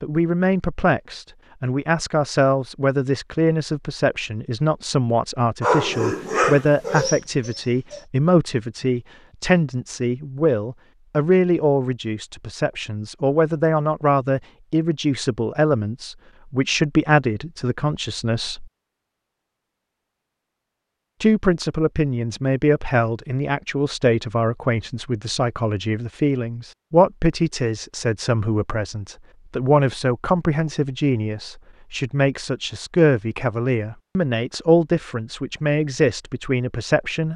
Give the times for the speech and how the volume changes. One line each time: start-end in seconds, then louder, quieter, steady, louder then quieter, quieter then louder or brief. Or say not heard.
0.0-18.6 steady
21.2-37.3 steady.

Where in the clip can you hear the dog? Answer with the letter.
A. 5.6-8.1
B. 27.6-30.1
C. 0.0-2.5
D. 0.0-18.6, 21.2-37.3
A.